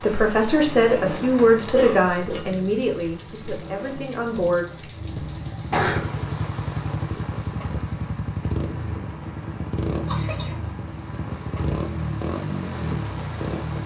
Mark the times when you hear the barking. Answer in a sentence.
You can't hear the barking here.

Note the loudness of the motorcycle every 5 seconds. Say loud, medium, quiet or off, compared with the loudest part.
medium, loud, loud.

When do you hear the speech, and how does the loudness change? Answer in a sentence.
You can hear the speech from 0.0 to 4.7 s, getting quieter.